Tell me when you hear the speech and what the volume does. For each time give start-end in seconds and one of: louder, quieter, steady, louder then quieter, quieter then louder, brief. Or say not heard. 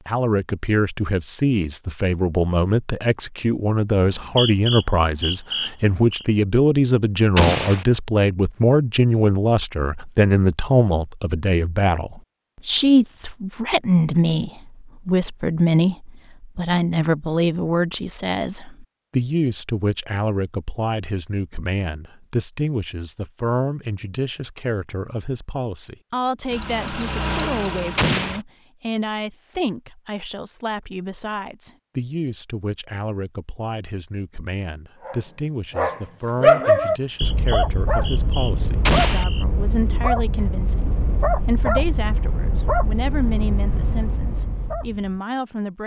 0.1-45.8 quieter.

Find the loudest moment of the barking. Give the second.
37 s.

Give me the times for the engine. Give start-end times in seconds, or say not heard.
26.5-28.4.